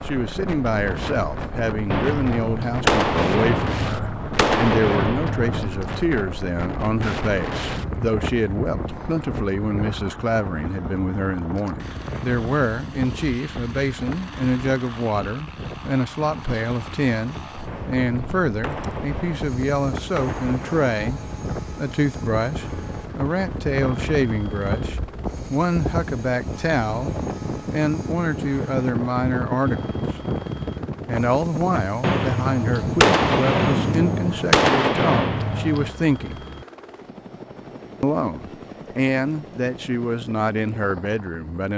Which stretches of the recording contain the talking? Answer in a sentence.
You can hear the talking from 0.0 to 30.2 s, from 31.1 to 36.5 s and from 38.0 to 41.7 s.